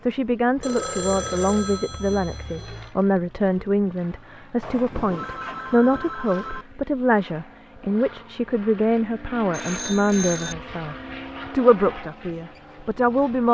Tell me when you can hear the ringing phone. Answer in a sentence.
The ringing phone can be heard from 0.6 to 2.9 s, from 4.6 to 6.7 s and from 9.5 to 10.6 s.